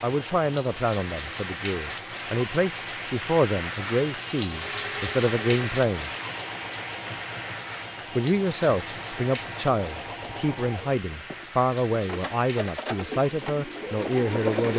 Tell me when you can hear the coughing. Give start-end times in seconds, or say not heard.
not heard.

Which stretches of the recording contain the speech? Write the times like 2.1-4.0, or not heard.
0.0-6.1, 8.2-14.7.